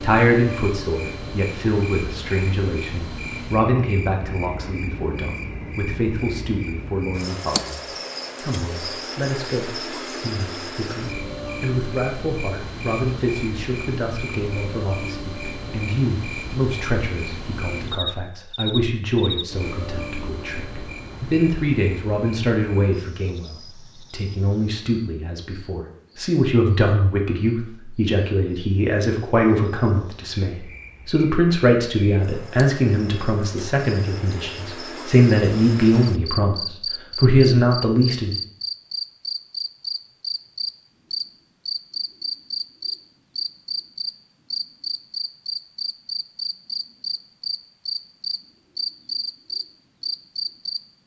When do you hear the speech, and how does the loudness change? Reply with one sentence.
You can hear the speech from 0.0 to 38.4 s, getting louder.